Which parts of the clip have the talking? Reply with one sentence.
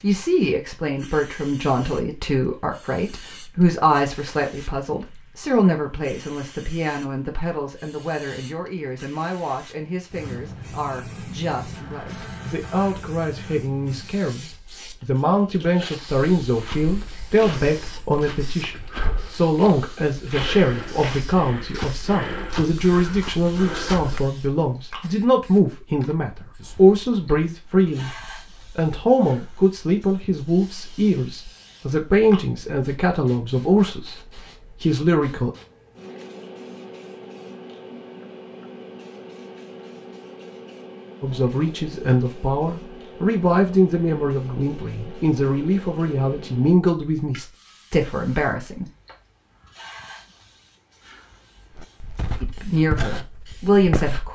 You can hear the talking from 0.0 to 28.1 s, from 28.8 to 35.5 s, from 41.2 to 48.9 s and from 52.4 to 54.3 s.